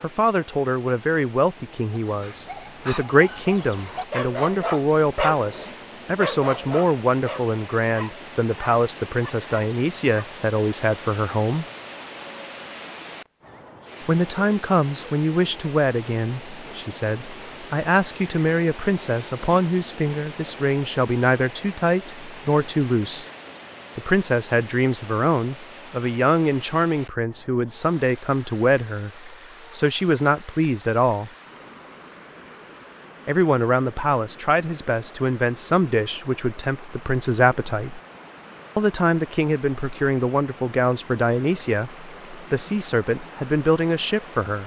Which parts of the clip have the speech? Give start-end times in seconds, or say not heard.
0.0-11.7, 14.1-23.2, 23.9-31.3, 33.2-38.0, 38.8-44.6.